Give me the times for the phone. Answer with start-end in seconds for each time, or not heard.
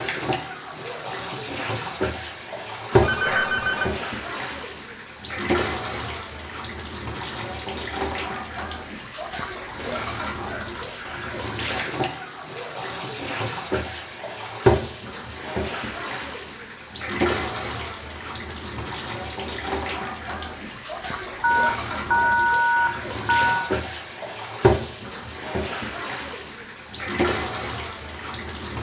2.9-4.0, 21.4-23.8.